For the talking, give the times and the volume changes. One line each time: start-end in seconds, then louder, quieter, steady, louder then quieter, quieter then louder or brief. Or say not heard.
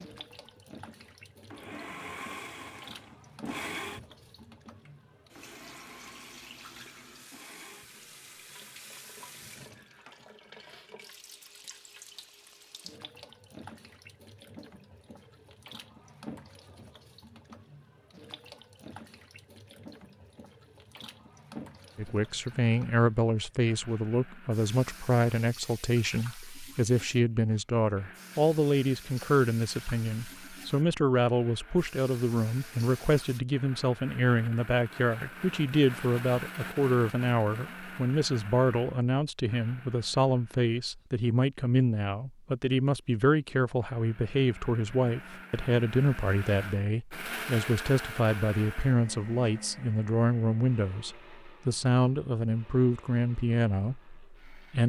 21.9-54.8 steady.